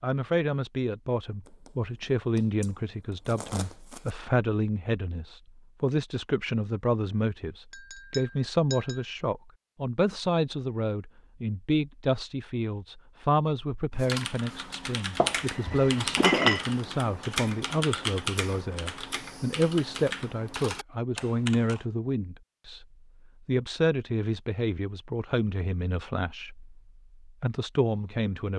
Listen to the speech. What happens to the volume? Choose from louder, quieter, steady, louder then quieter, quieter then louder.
steady.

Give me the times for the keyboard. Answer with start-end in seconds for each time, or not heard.
13.9-21.9.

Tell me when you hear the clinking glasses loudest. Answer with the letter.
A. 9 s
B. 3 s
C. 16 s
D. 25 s
C.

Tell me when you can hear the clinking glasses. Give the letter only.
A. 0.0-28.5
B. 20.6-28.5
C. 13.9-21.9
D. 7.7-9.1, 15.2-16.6
D.